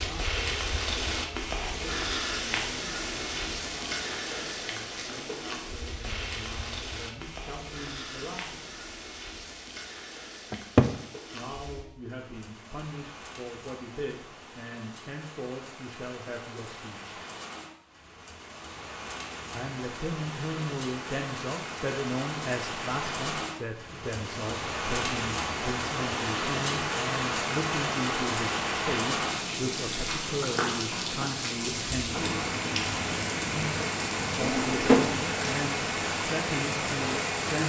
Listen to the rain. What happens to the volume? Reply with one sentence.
The loudness of the rain goes down, then up.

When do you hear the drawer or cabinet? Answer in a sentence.
You can hear the drawer or cabinet from 10.5 to 10.9 s and from 34.4 to 35.2 s.